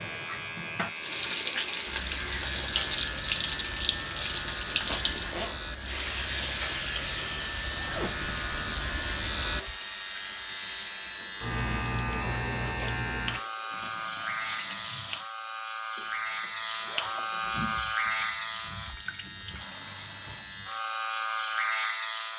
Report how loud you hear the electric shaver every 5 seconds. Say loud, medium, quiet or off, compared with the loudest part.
medium, loud, loud, loud, loud.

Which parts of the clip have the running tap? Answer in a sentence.
You can hear the running tap from 0.0 to 15.2 s and from 17.5 to 20.7 s.